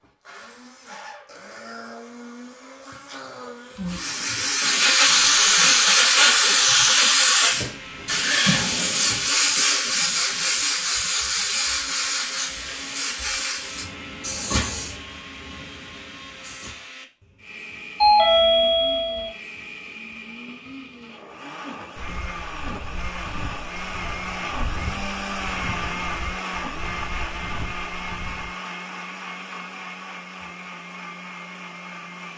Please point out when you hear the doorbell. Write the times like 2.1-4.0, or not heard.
18.0-19.3.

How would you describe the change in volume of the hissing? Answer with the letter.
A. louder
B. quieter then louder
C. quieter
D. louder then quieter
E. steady
C.